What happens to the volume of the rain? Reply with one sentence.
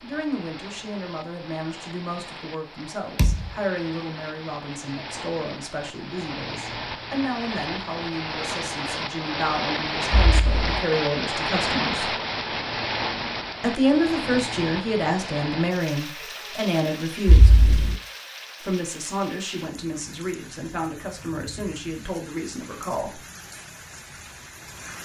The volume of the rain goes up, then down.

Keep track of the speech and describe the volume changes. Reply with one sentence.
The loudness of the speech goes up, then down.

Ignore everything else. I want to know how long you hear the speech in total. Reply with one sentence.
The speech can be heard for 21 seconds in total.